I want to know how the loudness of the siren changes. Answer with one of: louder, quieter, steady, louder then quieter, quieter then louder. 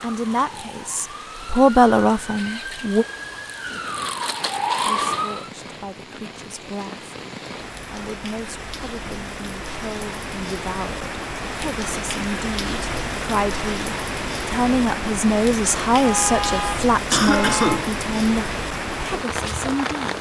louder.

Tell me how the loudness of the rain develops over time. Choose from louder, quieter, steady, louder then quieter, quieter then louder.
louder.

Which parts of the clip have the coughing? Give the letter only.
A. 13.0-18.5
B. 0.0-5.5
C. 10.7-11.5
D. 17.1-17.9
D.